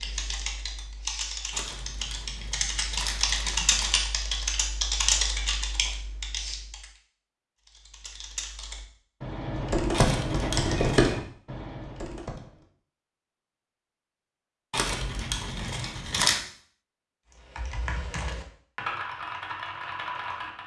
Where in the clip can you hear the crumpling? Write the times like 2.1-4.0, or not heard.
1.5-4.0, 9.9-11.2, 14.7-16.4.